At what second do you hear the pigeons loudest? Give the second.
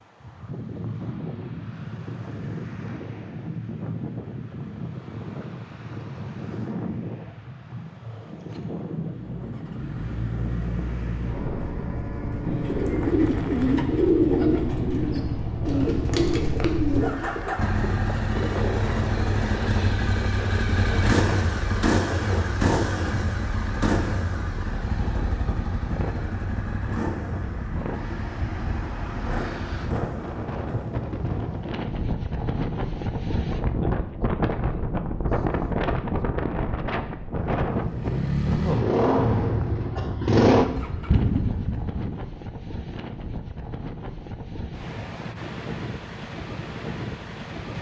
14 s.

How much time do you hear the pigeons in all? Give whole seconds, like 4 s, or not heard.
5 s.